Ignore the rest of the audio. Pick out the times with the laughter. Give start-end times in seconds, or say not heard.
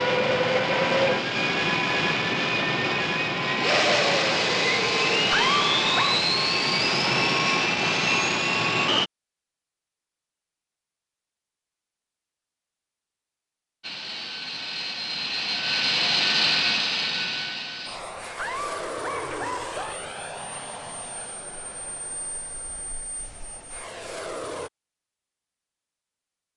5.3-6.2, 18.4-20.0.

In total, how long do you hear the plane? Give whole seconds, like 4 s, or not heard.
20 s.